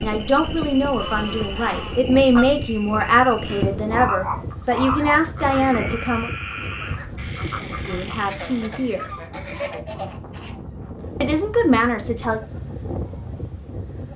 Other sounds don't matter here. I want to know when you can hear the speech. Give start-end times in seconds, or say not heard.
0.0-6.3, 7.8-9.1, 11.2-12.4.